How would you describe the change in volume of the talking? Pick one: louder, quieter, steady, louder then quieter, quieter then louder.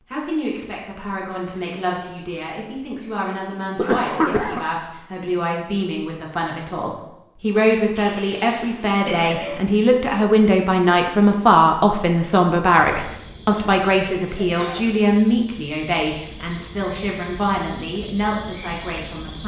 louder then quieter.